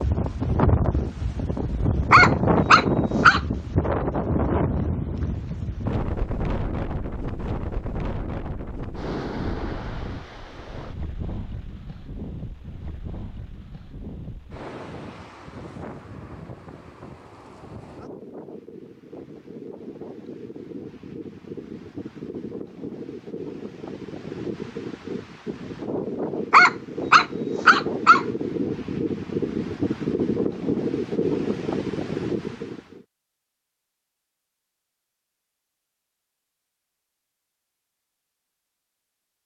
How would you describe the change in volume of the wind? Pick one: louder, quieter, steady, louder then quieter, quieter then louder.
quieter then louder.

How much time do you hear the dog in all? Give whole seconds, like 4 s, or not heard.
3 s.